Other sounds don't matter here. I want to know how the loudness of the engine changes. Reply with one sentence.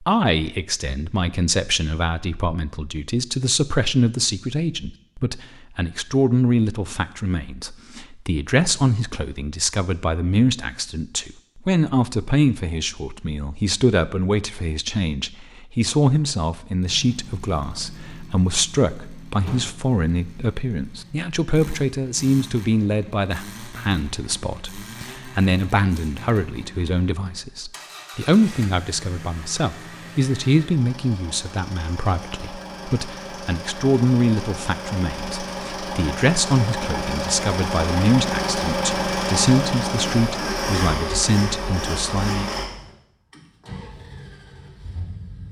The volume of the engine goes up.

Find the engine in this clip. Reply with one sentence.
The engine can be heard from 16.8 to 45.4 s.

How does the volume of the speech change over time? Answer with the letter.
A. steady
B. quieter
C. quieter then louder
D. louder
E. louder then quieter
A.